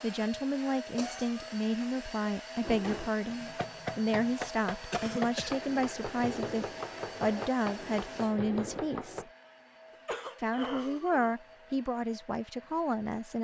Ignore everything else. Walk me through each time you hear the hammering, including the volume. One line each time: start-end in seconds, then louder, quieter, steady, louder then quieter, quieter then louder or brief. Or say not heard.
2.6-9.2 steady.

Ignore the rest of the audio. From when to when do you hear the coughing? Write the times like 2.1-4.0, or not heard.
0.9-1.6, 4.9-5.5, 9.9-11.3.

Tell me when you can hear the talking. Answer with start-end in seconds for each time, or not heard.
0.0-9.2, 10.4-13.4.